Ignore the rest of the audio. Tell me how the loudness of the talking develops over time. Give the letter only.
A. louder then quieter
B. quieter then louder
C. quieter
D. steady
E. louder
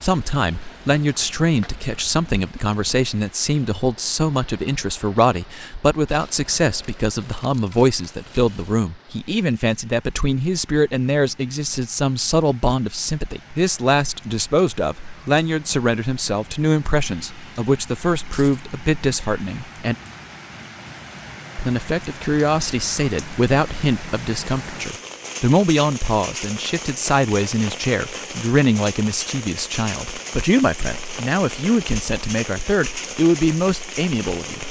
D.